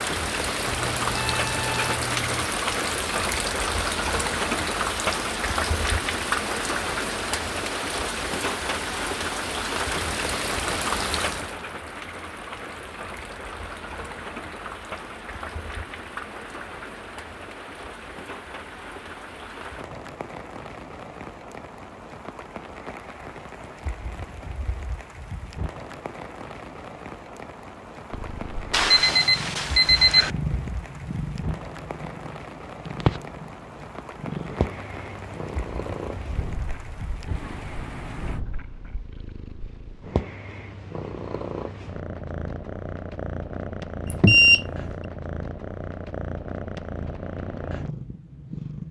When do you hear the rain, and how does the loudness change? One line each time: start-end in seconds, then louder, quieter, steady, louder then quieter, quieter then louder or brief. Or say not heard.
0.0-38.4 quieter.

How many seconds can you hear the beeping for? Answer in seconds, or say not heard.
4 s.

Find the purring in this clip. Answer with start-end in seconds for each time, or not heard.
28.1-48.8.